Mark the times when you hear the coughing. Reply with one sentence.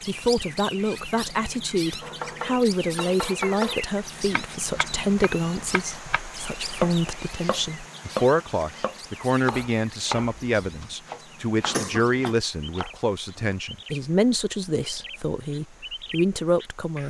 You can hear the coughing from 11.6 to 12.3 s.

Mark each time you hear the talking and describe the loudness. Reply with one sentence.
The talking can be heard from 0.1 to 17.0 s, at a steady volume.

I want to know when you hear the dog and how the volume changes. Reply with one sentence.
You can't hear the dog here.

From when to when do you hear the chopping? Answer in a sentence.
You can hear the chopping from 2.0 to 13.6 s.